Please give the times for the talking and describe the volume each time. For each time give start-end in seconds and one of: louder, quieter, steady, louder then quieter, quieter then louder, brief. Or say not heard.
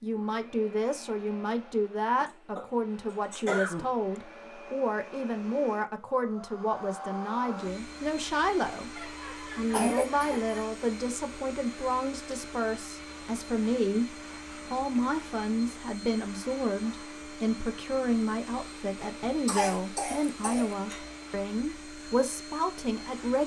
0.0-23.4 steady.